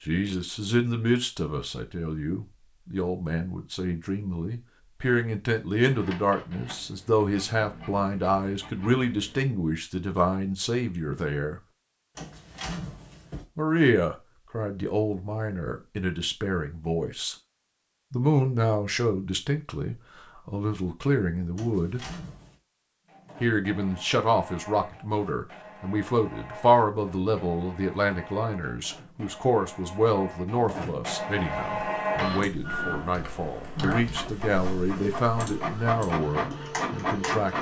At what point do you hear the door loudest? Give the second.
13 s.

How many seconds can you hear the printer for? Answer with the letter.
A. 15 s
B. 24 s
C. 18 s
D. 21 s
C.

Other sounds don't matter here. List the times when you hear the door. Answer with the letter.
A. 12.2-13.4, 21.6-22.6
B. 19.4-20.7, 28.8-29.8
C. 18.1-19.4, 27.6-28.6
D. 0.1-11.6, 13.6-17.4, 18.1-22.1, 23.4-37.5
A.